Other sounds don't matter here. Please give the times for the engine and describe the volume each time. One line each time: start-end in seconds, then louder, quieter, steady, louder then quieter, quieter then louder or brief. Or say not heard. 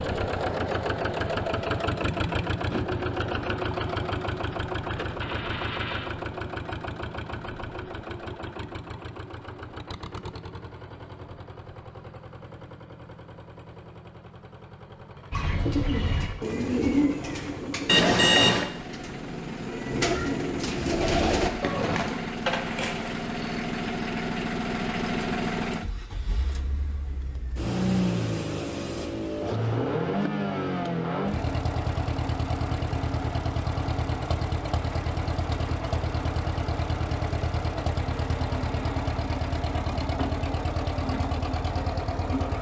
0.0-42.5 quieter then louder.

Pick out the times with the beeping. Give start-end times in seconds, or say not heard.
17.9-18.7.